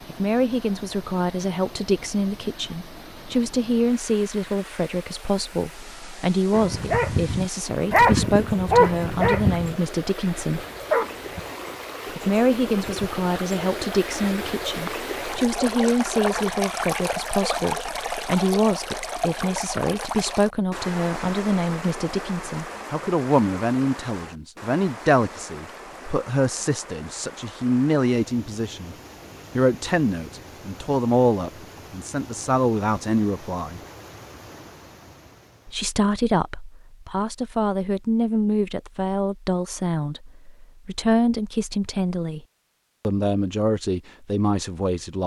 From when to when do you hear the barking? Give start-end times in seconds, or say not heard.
6.5-11.5.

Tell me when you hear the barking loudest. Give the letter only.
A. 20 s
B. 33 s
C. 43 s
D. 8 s
D.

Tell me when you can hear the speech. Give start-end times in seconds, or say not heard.
0.1-10.7, 12.2-28.9, 29.6-33.8, 35.6-42.4, 43.0-45.2.